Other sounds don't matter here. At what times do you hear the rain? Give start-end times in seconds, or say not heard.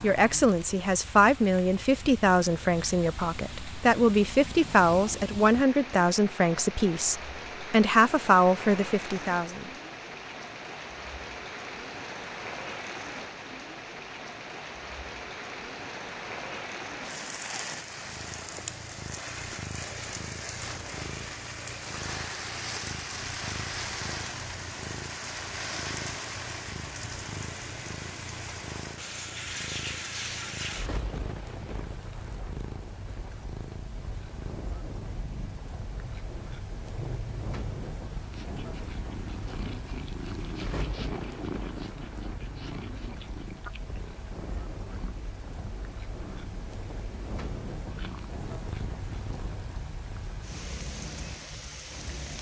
0.0-52.3.